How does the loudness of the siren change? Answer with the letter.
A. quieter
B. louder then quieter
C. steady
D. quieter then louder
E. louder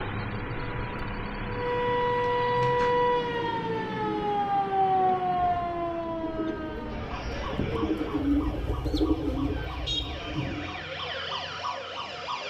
D.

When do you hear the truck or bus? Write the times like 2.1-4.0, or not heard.
0.0-8.2.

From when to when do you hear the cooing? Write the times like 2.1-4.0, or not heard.
2.5-10.8.